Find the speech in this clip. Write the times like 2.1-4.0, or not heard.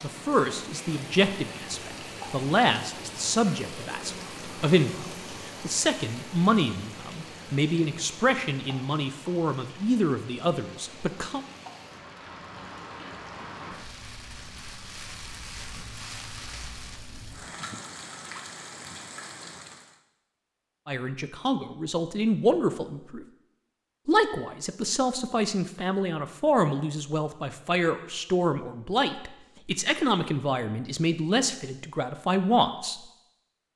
0.0-11.4, 20.9-23.2, 24.1-33.0.